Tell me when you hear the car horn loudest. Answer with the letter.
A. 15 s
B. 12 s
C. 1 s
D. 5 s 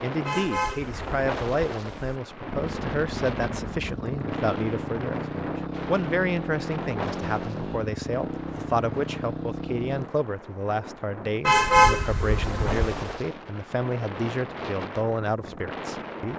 B.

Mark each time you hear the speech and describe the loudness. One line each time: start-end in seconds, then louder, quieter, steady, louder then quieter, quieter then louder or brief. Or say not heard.
0.0-16.3 steady.